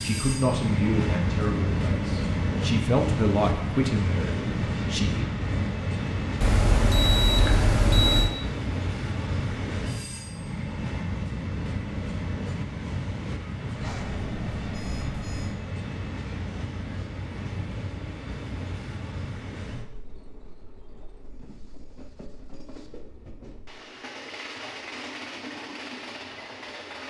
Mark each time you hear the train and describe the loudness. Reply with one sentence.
The train can be heard from 0.0 to 27.0 s, getting quieter.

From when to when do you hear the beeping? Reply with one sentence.
The beeping can be heard from 6.4 to 8.3 s and from 13.8 to 15.6 s.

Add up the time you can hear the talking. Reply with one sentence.
You can hear the talking for 5 seconds altogether.